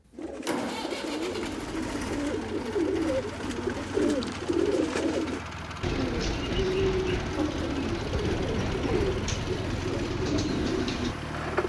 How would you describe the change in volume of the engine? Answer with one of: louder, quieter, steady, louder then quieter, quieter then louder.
steady.